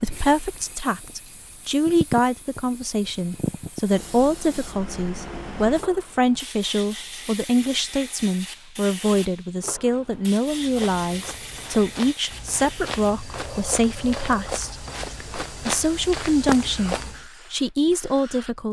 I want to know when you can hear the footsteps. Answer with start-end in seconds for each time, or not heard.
10.6-17.2.